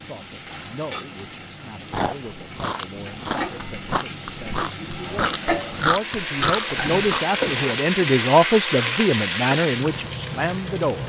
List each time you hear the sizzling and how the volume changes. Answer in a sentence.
You can hear the sizzling from 0.0 to 11.0 s, getting louder.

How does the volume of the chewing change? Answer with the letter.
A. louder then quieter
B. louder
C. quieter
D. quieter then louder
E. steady
B.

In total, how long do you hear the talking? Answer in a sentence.
The talking can be heard for 11 seconds in total.